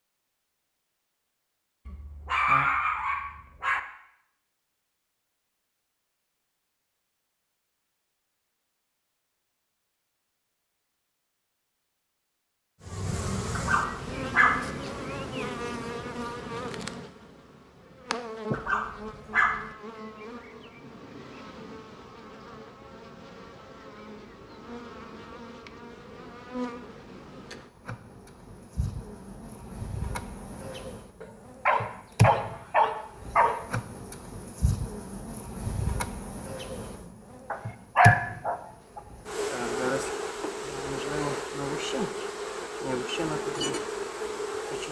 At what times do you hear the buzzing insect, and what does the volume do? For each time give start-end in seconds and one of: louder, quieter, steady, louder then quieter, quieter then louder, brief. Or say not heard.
12.8-44.8 quieter then louder.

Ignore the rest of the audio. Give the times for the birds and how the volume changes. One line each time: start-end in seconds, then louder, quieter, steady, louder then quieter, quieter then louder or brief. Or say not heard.
not heard.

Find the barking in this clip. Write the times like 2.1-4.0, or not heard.
1.9-3.8, 13.6-14.7, 18.5-19.7, 31.2-33.6, 37.5-39.0.